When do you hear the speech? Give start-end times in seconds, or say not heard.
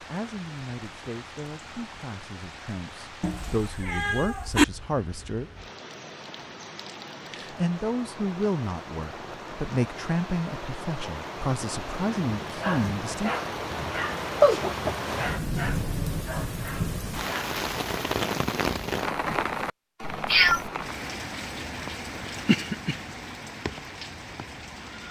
0.1-5.5, 7.3-13.3.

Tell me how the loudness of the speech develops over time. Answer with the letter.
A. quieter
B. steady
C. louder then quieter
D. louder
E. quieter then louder
D.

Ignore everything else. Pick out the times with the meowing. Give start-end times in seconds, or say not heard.
3.2-4.7, 14.4-14.9, 20.2-20.7.